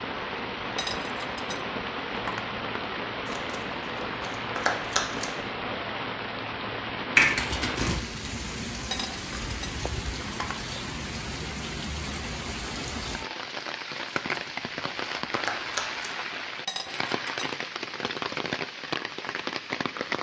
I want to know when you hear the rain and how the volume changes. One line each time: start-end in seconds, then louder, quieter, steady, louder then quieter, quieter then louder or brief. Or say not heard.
0.0-20.1 steady.